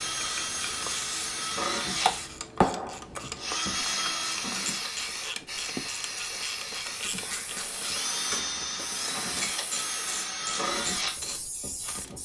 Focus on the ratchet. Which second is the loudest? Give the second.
2 s.